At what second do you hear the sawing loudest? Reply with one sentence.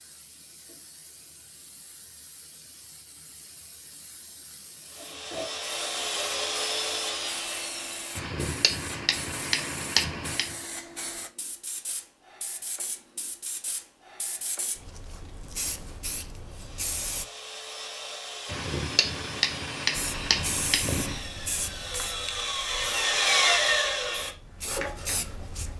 The loudest moment of the sawing is at 23 seconds.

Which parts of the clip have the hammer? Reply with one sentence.
You can hear the hammer from 8.2 to 10.6 s and from 18.4 to 21.2 s.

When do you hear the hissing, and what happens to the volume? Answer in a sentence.
You can hear the hissing from 0.0 to 17.2 s, getting louder; and from 19.9 to 25.7 s, getting quieter then louder.